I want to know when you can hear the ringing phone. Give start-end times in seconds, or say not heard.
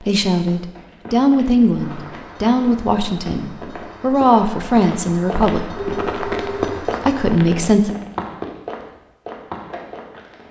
5.8-6.8.